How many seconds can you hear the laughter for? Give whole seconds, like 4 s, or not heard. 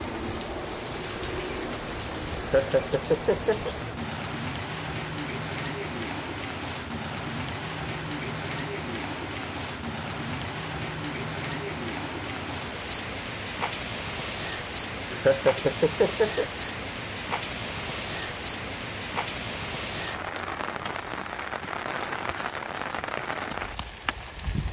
3 s.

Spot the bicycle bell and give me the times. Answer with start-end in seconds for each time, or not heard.
not heard.